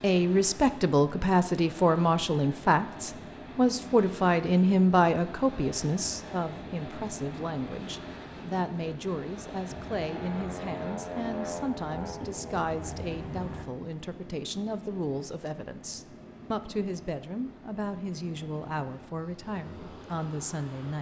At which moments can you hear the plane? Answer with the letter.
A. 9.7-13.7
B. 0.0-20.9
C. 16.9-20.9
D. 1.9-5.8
A.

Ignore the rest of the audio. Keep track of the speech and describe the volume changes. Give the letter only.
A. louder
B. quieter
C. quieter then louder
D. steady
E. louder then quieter
B.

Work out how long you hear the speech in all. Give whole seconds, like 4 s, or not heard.
21 s.